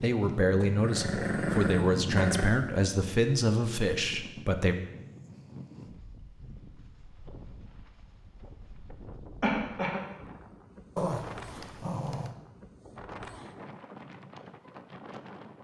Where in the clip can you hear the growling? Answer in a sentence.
The growling can be heard from 0.8 to 2.5 s and from 10.9 to 12.3 s.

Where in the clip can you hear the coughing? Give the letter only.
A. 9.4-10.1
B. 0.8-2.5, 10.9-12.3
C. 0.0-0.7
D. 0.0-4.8
A.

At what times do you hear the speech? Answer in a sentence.
You can hear the speech from 0.0 to 4.8 s.